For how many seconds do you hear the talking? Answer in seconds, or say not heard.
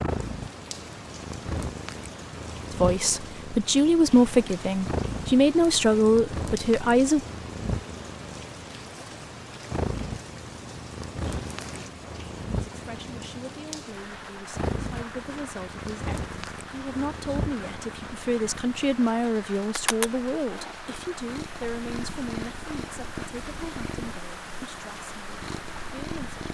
18 s.